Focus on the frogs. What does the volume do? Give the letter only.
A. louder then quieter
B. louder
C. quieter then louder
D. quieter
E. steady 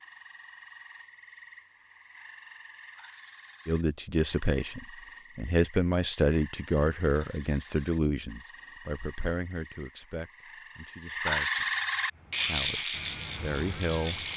B.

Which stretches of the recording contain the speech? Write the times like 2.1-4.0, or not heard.
3.6-11.7, 12.4-14.2.